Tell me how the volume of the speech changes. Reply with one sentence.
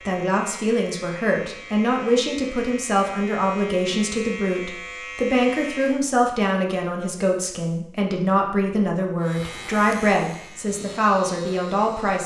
The loudness of the speech stays about the same.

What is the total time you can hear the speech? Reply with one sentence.
The speech can be heard for 12 seconds in total.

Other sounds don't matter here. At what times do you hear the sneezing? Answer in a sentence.
You can't hear the sneezing here.